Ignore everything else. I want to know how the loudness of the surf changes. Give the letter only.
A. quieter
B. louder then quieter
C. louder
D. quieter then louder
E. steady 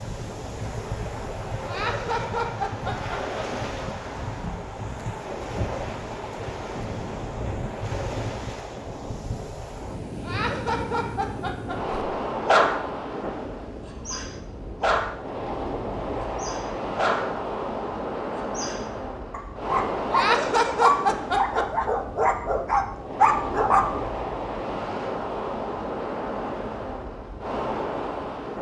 E.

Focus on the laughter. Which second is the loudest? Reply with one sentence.
The loudest moment of the laughter is at 21 seconds.